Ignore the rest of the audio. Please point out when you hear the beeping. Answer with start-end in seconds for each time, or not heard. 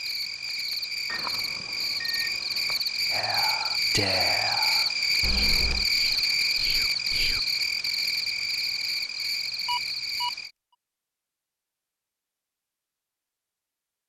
1.1-2.8, 5.2-5.9, 9.7-10.3.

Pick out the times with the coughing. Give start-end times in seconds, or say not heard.
not heard.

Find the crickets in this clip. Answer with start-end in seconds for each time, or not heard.
0.0-10.5.